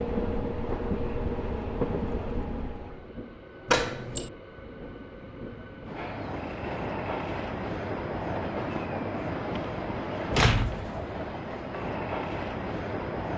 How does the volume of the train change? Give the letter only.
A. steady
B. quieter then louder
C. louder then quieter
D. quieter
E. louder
B.